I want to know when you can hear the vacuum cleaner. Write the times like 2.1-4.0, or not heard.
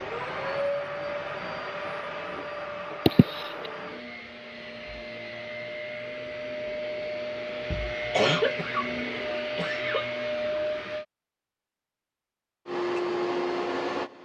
0.0-11.1, 12.7-14.2.